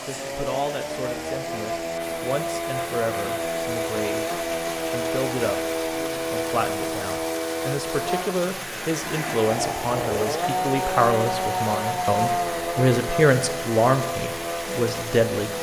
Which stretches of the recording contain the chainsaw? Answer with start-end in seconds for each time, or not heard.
0.0-15.5.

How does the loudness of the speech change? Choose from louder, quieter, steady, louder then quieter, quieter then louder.
louder.